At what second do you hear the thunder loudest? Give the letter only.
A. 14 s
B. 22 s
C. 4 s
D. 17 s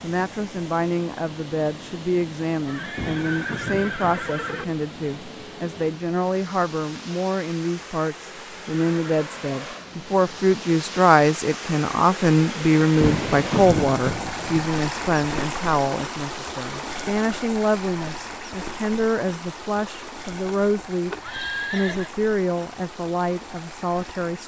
A.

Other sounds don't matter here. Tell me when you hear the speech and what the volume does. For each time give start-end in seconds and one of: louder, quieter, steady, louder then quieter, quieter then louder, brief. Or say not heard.
0.0-24.4 louder then quieter.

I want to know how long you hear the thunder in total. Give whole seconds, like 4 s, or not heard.
3 s.